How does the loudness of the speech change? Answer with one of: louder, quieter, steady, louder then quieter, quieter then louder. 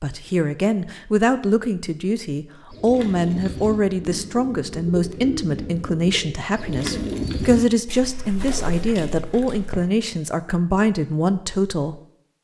steady.